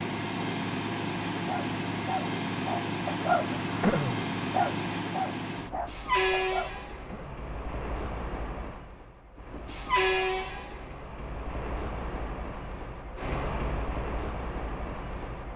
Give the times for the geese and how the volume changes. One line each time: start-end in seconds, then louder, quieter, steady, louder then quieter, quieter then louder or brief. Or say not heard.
not heard.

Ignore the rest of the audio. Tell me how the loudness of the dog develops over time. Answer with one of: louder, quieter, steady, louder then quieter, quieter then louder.
louder then quieter.